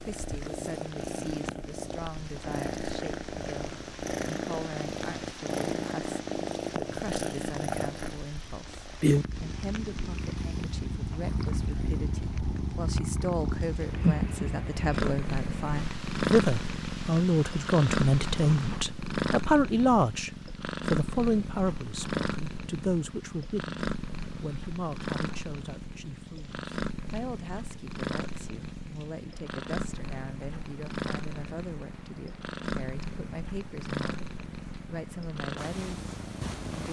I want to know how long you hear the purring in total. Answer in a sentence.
You can hear the purring for 37 seconds altogether.